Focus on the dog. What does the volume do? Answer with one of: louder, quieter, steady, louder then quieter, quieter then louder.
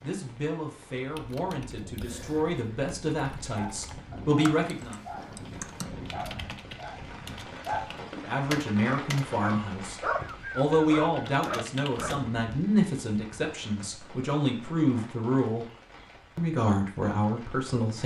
louder.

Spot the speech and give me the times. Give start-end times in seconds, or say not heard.
0.0-5.0, 8.0-15.7, 16.4-18.0.